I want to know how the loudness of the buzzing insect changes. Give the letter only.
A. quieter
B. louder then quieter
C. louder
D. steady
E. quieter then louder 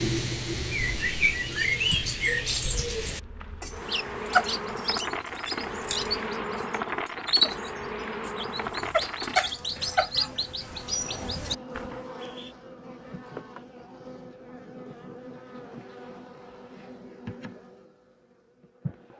A.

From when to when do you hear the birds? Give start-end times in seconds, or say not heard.
0.0-12.4.